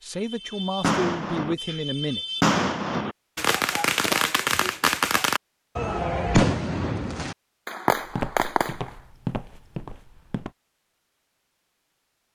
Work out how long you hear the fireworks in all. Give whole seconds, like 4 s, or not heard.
9 s.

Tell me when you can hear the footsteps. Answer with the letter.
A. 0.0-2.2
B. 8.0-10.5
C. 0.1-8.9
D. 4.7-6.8
B.